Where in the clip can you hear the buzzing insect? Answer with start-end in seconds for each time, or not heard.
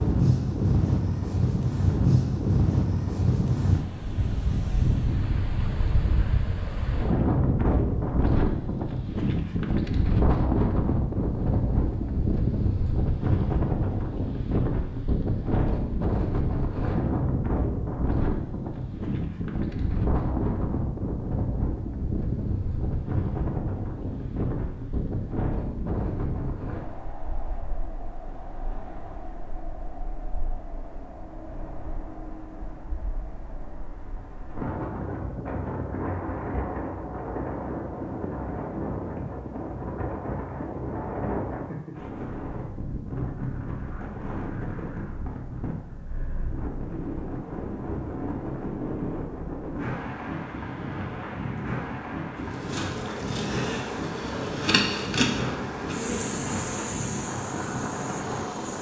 52.4-58.7.